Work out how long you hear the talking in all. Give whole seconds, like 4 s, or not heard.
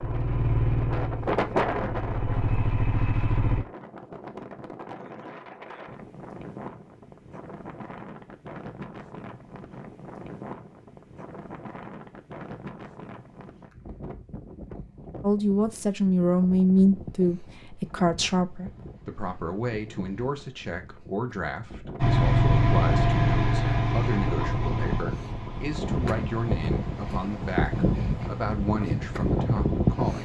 15 s.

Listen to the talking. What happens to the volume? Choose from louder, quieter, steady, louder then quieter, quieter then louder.
quieter.